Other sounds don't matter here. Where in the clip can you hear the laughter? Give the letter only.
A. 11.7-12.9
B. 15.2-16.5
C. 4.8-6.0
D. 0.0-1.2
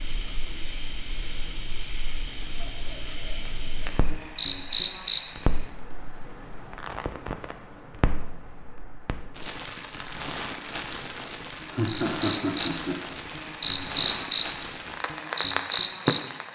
A.